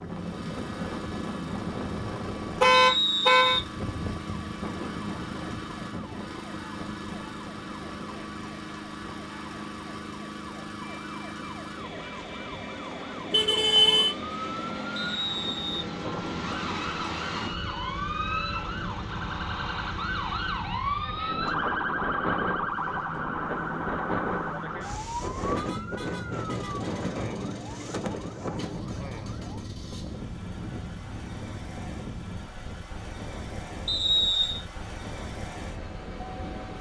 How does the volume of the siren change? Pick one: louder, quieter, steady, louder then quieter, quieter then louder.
louder then quieter.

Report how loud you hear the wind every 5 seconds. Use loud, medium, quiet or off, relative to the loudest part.
loud, medium, medium, loud, loud, loud, medium, medium.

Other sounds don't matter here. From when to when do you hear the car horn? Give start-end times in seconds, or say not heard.
2.6-3.6, 13.3-14.2, 25.4-27.1.